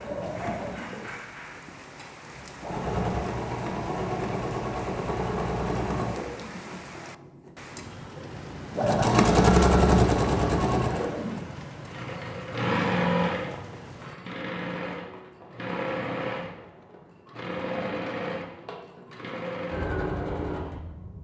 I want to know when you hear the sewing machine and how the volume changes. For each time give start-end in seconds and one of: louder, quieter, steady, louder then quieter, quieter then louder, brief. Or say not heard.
0.0-21.1 louder then quieter.